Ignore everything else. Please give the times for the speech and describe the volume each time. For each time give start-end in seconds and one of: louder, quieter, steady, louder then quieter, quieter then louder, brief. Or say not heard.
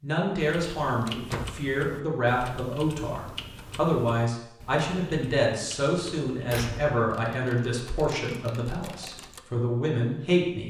0.0-10.6 steady.